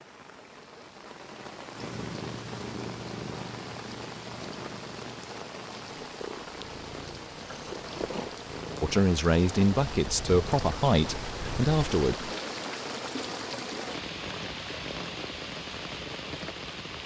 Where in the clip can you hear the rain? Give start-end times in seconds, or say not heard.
0.0-17.0.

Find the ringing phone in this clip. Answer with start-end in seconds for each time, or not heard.
not heard.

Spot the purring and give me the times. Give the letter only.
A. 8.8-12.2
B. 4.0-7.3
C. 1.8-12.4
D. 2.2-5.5
C.